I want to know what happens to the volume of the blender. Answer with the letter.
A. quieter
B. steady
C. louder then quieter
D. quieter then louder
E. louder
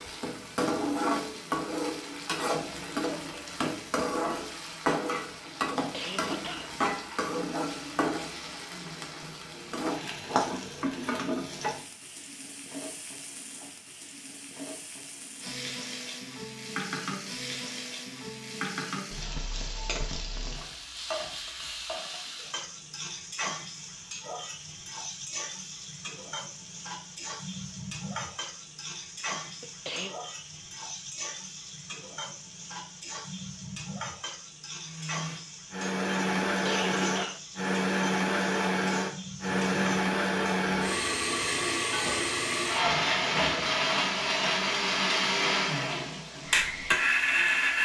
B.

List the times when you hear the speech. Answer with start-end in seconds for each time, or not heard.
not heard.